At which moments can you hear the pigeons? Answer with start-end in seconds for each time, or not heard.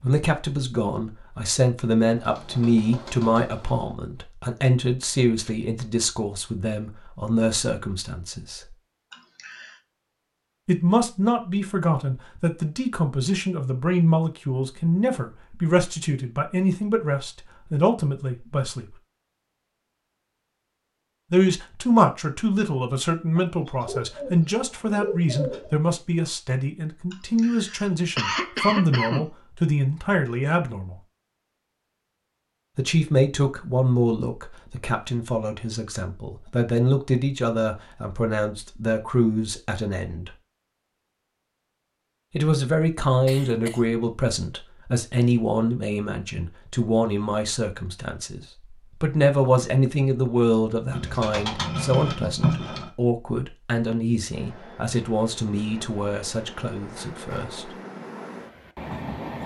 2.1-4.0, 23.4-25.8, 50.9-52.9.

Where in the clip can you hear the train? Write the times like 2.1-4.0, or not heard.
54.2-59.4.